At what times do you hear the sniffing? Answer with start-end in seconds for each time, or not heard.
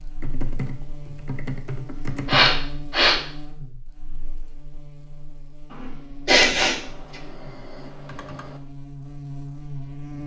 2.2-3.2, 5.7-6.8.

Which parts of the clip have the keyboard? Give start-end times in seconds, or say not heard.
0.2-2.6, 6.6-8.6.